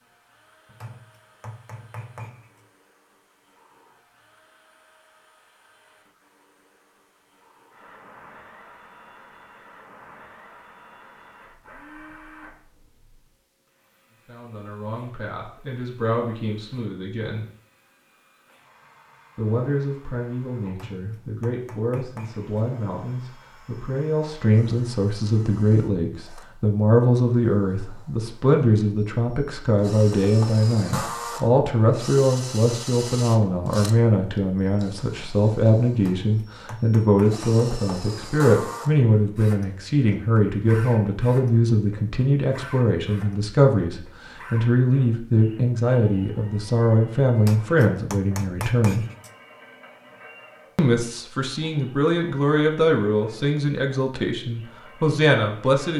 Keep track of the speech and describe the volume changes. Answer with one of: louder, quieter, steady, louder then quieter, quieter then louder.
louder.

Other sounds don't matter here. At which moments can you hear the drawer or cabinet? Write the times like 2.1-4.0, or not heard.
not heard.